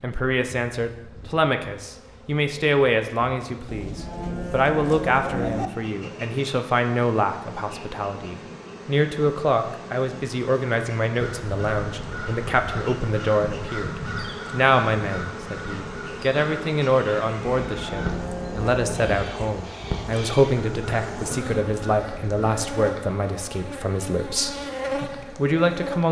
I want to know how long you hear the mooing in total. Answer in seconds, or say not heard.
4 s.